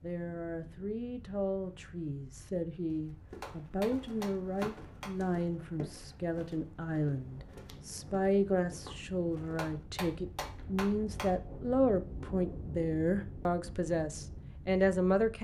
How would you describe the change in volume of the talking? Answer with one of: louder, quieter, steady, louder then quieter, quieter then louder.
louder.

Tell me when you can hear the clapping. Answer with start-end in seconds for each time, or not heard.
3.4-5.2, 9.6-11.3.